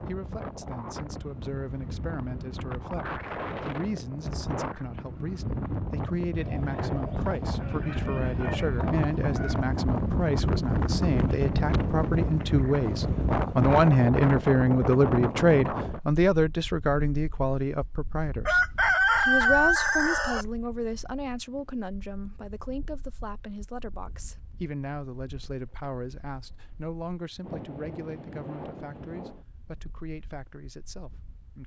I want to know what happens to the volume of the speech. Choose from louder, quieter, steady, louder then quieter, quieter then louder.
louder then quieter.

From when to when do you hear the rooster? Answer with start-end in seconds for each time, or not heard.
6.3-9.8, 18.4-20.4.